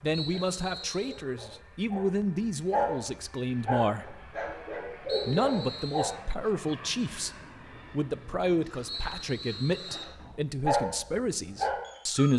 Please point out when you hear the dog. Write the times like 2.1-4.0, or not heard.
0.2-6.1, 10.0-12.3.